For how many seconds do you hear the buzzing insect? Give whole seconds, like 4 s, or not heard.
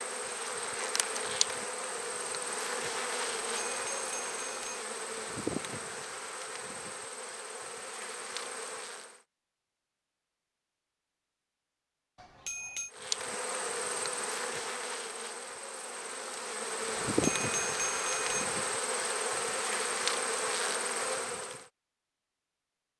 18 s.